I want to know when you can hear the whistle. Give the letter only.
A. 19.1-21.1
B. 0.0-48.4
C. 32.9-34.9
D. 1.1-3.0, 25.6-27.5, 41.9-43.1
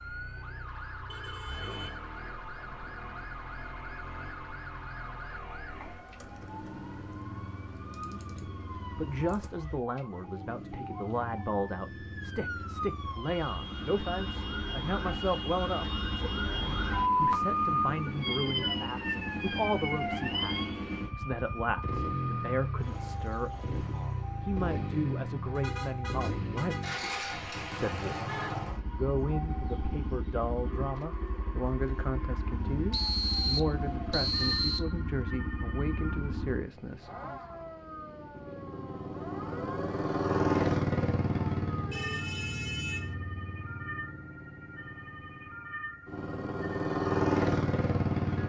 C.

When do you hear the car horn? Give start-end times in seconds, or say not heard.
1.1-3.0, 25.6-27.5, 41.9-43.1.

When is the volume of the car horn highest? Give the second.
43 s.